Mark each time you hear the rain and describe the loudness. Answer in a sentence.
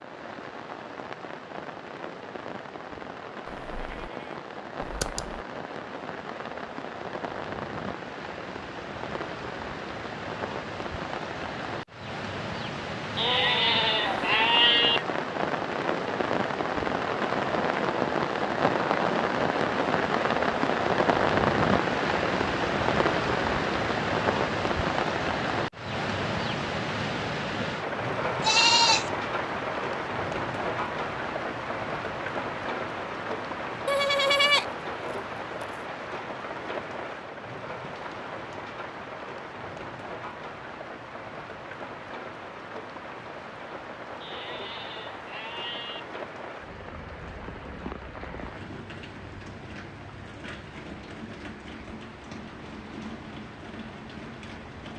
The rain can be heard from 0.0 to 54.9 s, getting louder then quieter.